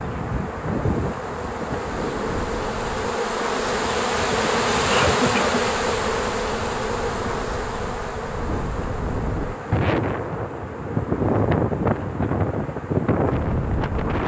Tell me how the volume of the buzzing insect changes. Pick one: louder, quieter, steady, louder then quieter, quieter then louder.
louder then quieter.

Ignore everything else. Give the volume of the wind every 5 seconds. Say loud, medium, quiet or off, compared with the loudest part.
medium, medium, loud.